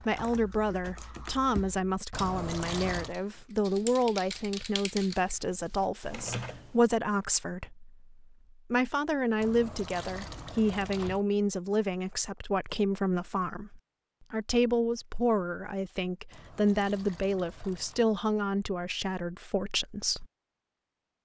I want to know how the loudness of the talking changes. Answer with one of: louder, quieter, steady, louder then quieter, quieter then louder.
steady.